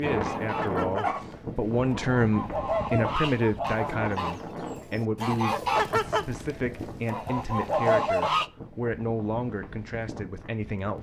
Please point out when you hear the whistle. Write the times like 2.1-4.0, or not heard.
not heard.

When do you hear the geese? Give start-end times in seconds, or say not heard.
0.0-8.4.